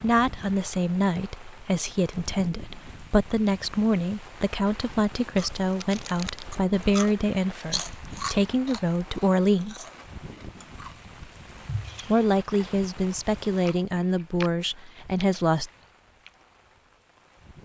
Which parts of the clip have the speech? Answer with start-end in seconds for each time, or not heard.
0.0-9.8, 12.1-15.7.